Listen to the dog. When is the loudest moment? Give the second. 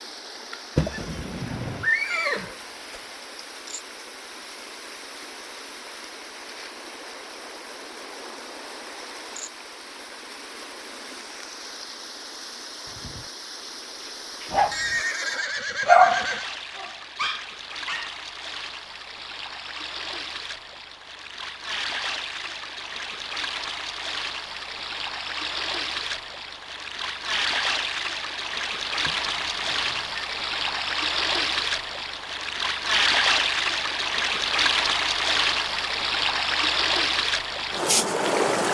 16 s.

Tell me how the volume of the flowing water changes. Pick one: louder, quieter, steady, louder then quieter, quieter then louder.
louder.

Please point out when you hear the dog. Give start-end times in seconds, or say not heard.
12.8-18.2.